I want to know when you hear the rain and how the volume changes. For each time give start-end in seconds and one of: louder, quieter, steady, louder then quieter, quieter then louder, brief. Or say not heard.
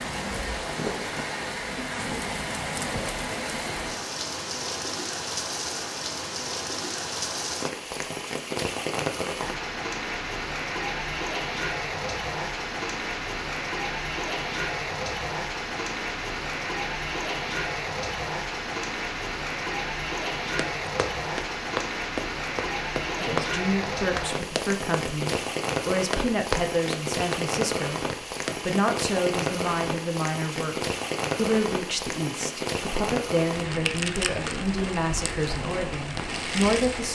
0.0-37.1 steady.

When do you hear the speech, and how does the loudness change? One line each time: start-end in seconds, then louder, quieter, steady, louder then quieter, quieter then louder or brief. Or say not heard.
23.2-37.1 steady.